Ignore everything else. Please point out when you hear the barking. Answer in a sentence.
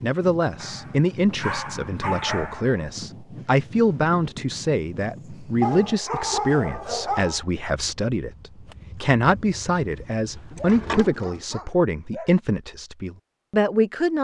You can hear the barking from 0.6 to 2.8 s, from 5.6 to 7.5 s and from 10.5 to 12.3 s.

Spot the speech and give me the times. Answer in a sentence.
You can hear the speech from 0.0 to 14.2 s.